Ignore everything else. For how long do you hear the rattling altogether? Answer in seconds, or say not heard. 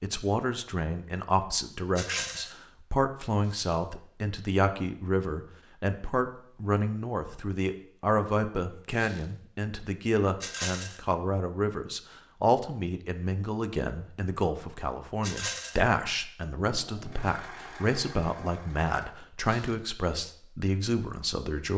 2 s.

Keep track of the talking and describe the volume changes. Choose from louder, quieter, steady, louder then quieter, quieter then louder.
steady.